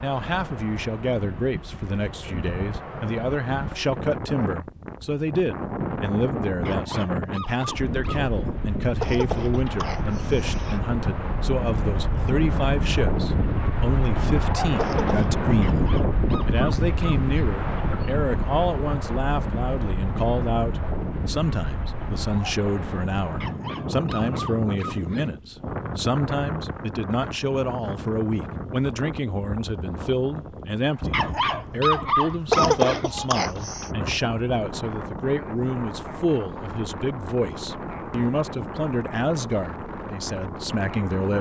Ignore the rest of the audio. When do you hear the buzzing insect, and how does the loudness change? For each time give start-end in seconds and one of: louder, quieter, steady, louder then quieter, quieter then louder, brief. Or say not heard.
not heard.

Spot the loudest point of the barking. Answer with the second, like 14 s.
32 s.